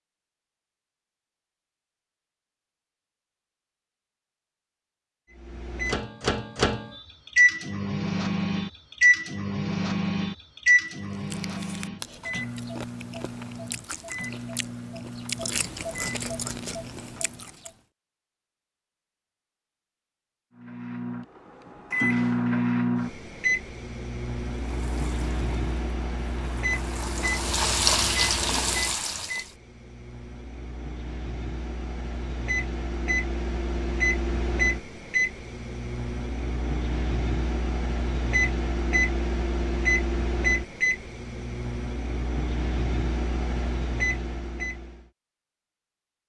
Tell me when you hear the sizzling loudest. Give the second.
28 s.